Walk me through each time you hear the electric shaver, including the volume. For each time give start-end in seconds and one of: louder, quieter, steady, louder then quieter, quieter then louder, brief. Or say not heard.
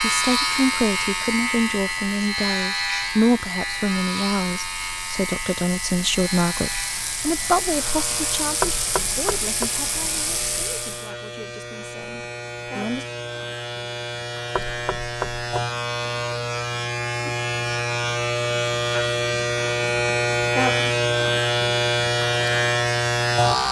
0.0-23.6 quieter then louder.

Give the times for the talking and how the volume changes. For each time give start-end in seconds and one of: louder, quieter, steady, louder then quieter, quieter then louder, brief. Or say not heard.
0.0-13.1 quieter.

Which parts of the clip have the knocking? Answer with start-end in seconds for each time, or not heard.
8.6-9.7, 14.6-15.4.